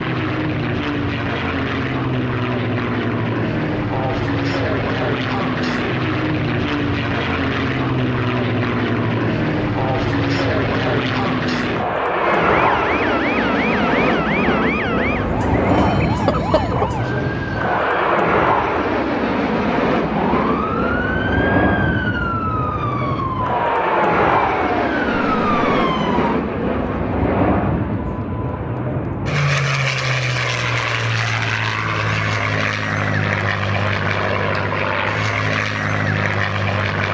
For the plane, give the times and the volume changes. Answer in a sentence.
The plane can be heard from 0.0 to 37.1 s, at a steady volume.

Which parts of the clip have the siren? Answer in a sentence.
You can hear the siren from 12.2 to 18.2 s and from 20.1 to 26.4 s.